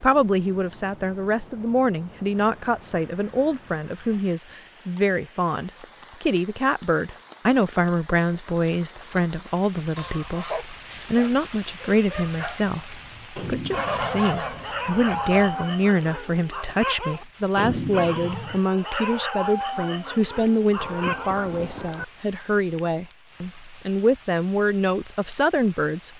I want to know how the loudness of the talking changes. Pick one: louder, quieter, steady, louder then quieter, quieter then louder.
steady.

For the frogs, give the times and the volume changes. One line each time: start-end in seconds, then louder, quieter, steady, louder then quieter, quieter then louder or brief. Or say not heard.
not heard.